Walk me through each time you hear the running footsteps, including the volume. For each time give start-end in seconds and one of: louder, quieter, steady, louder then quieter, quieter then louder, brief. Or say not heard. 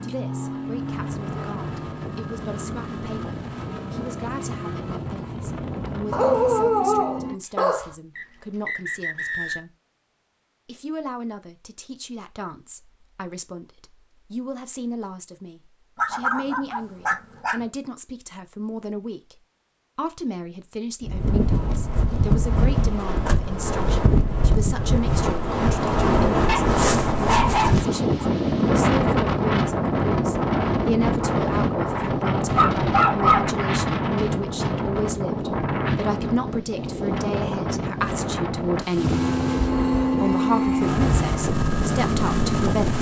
not heard.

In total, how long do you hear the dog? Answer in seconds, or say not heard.
6 s.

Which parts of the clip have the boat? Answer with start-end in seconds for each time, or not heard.
0.0-7.4, 39.0-42.9.